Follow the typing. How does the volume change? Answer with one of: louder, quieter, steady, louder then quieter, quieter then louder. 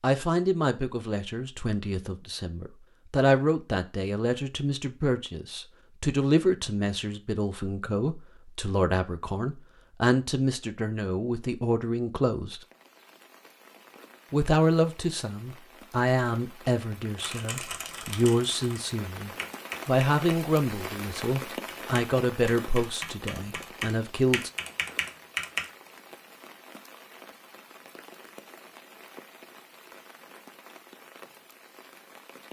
louder.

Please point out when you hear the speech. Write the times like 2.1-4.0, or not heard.
0.0-12.6, 14.3-24.5.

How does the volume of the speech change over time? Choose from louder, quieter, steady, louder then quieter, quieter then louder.
steady.